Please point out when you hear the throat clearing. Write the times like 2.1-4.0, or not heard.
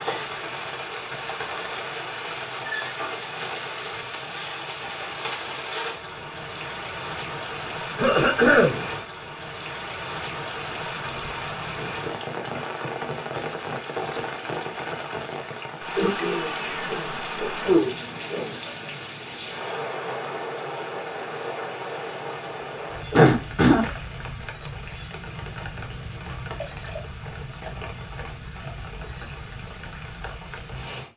8.0-8.8, 15.9-18.6, 23.1-23.9.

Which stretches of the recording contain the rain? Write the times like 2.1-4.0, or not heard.
0.0-31.1.